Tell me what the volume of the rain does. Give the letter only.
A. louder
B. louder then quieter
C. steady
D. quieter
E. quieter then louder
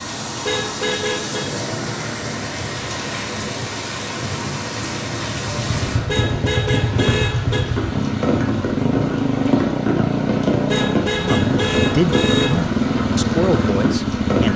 C.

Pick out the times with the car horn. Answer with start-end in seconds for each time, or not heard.
0.5-1.6, 6.0-7.7, 10.7-12.6.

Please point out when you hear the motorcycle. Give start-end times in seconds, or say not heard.
5.6-14.5.